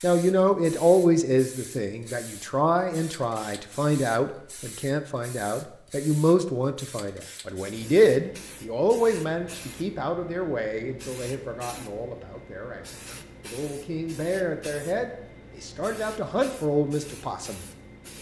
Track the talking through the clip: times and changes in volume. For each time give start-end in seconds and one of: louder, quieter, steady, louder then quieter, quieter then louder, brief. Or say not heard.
0.0-17.6 quieter then louder.